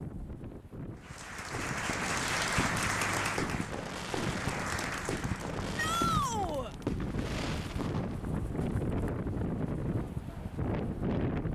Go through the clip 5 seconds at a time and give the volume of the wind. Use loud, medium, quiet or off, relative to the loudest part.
medium, loud, loud.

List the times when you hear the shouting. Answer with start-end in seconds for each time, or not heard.
5.8-6.8.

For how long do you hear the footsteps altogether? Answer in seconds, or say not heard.
not heard.